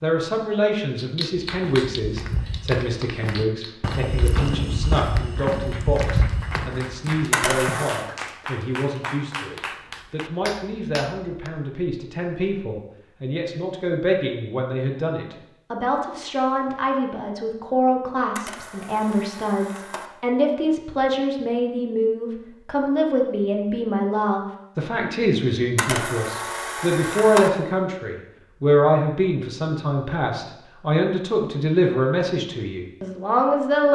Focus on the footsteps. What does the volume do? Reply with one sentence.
The loudness of the footsteps goes up, then down.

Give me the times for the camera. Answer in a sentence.
You can hear the camera from 7.3 to 8.1 s, from 18.4 to 20.1 s and from 25.8 to 27.5 s.